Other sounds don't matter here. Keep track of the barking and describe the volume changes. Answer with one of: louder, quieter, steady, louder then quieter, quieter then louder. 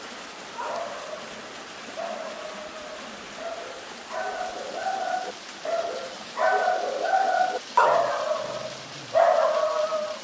louder.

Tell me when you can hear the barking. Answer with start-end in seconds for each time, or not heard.
0.6-10.2.